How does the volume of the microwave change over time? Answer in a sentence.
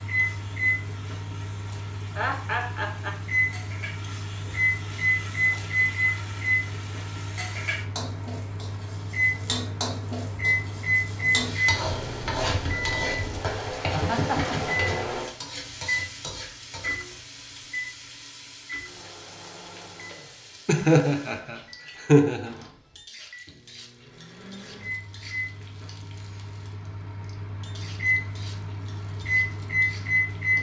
The volume of the microwave goes down, then up.